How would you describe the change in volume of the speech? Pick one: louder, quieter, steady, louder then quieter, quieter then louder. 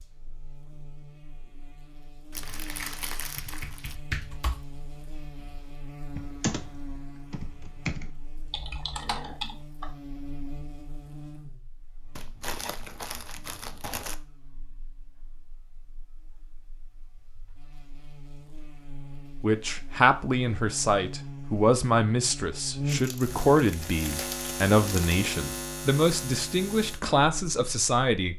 steady.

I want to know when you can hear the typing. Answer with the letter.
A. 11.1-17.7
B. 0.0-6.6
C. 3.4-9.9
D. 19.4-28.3
C.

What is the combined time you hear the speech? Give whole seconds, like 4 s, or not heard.
9 s.